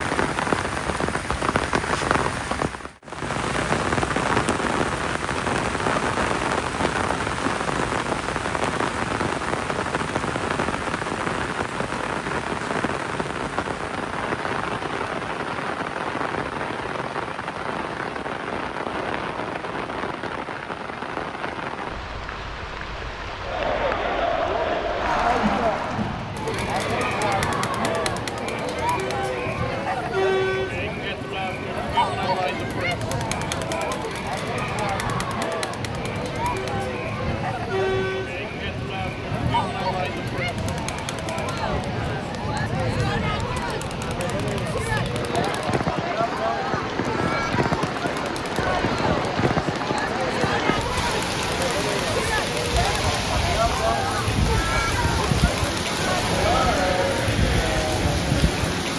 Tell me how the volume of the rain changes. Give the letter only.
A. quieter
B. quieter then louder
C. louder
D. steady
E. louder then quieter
B.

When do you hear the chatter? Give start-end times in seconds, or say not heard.
23.4-58.9.